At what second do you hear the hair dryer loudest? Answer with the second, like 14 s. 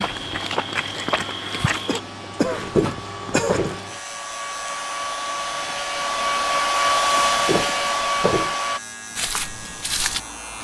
7 s.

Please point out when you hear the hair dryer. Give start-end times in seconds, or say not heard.
0.0-8.8.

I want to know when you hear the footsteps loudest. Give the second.
3 s.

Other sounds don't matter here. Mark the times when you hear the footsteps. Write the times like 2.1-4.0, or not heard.
0.0-3.8, 7.5-10.2.